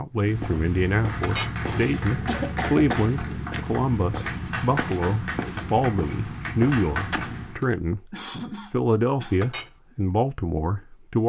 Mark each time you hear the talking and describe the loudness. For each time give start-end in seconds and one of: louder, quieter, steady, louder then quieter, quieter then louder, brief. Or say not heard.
0.0-11.2 steady.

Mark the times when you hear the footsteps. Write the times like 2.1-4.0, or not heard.
0.1-7.7.